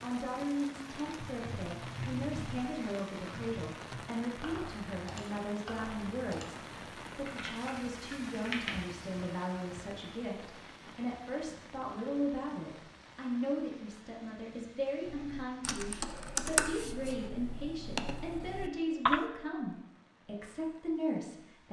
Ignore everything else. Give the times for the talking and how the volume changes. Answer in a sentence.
You can hear the talking from 0.0 to 21.6 s, at a steady volume.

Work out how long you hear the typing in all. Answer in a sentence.
The typing can be heard for 12 seconds in total.